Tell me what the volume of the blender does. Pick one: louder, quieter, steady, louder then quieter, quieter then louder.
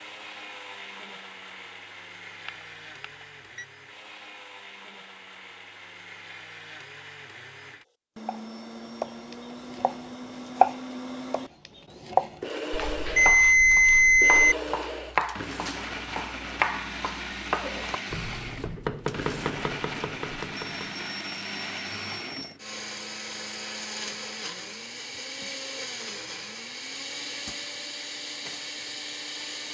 louder.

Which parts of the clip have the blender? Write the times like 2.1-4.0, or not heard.
0.0-29.6.